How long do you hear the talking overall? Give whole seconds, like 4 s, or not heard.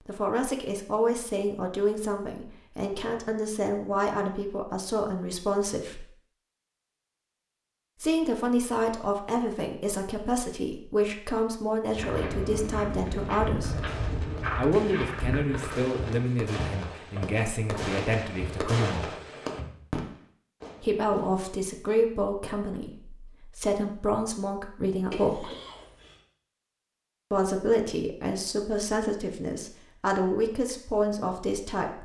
26 s.